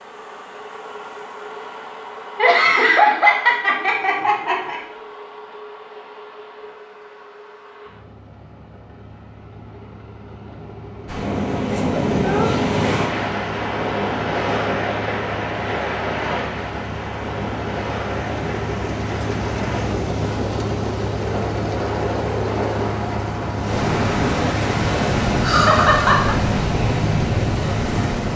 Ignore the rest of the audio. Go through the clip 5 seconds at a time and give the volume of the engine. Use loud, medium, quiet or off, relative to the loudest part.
medium, quiet, medium, loud, loud, loud.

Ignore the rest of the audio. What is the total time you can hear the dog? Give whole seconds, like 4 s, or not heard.
not heard.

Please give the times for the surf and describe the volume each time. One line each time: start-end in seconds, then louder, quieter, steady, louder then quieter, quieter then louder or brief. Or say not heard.
11.1-28.3 quieter then louder.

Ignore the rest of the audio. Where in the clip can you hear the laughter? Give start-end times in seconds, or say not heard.
2.4-4.8, 11.7-12.6, 25.4-26.4.